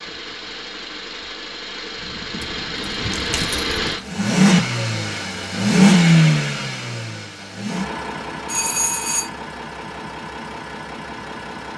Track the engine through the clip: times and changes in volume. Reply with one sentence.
You can hear the engine from 0.0 to 11.7 s, getting louder then quieter.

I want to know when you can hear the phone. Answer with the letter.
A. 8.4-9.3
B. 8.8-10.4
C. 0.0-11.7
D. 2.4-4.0
A.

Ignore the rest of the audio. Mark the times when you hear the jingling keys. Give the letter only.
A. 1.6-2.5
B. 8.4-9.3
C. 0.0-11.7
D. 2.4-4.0
D.